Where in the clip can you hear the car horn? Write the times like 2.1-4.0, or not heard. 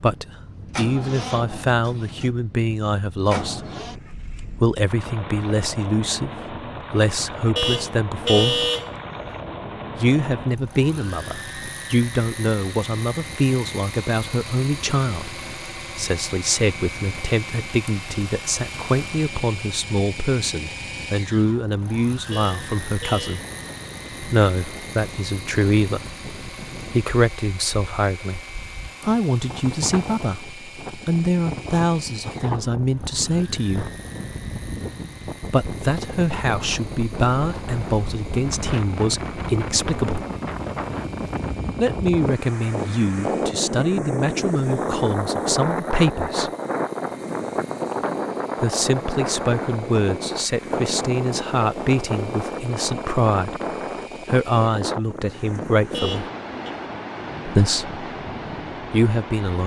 7.5-8.9, 22.3-23.4, 55.9-56.7.